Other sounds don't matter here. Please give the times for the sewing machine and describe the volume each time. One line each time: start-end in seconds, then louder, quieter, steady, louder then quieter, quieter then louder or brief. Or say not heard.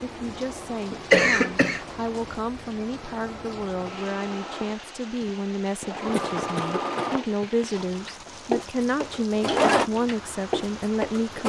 0.2-11.4 louder.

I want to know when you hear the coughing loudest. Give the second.
1 s.